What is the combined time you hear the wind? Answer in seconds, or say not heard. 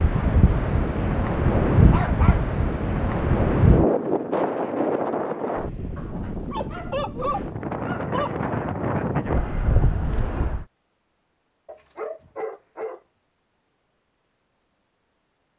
11 s.